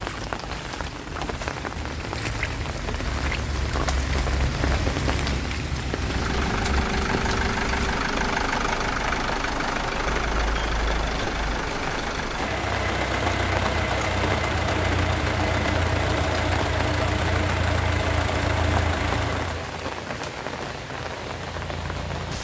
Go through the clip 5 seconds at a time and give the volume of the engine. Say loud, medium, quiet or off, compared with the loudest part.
off, loud, loud, loud, off.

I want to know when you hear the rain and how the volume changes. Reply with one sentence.
You can hear the rain from 0.0 to 22.3 s, at a steady volume.